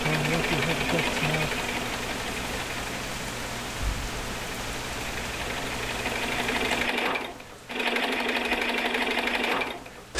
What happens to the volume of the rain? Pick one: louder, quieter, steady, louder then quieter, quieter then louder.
quieter.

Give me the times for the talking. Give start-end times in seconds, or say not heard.
0.0-1.6.